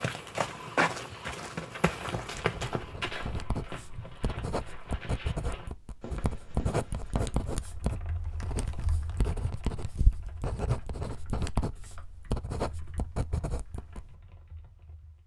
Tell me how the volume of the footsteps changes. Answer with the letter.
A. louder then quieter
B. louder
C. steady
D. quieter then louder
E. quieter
E.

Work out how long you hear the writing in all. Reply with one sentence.
You can hear the writing for 12 seconds altogether.